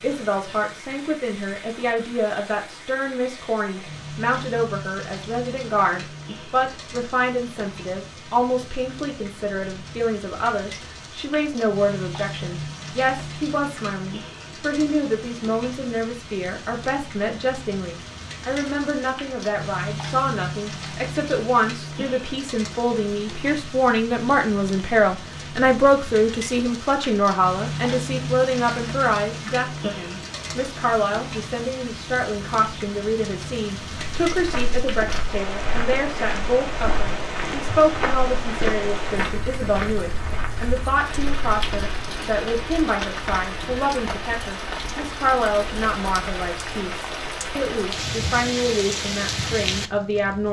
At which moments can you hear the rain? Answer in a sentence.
The rain can be heard from 0.0 to 50.4 s.